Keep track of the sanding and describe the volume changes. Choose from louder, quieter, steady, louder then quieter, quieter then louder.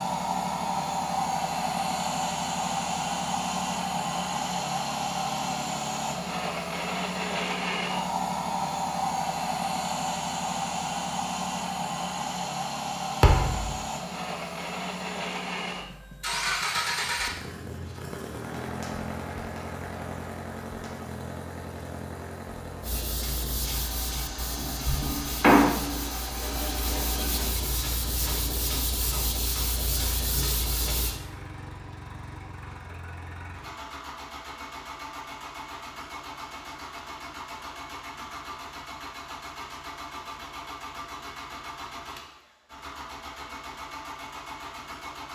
louder then quieter.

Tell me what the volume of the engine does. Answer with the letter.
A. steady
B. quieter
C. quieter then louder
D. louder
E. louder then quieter
B.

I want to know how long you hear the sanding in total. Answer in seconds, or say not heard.
8 s.